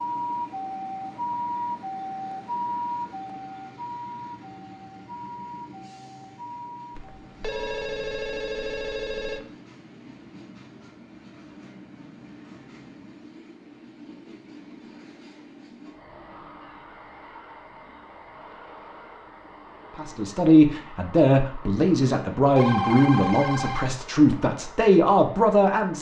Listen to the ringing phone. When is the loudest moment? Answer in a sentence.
The volume of the ringing phone peaks at 23 seconds.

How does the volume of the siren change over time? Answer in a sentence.
The volume of the siren goes down.